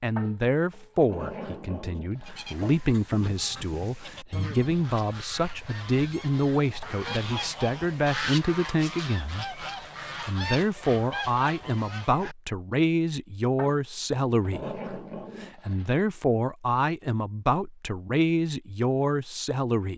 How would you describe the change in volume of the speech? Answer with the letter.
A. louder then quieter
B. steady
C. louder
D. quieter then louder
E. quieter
B.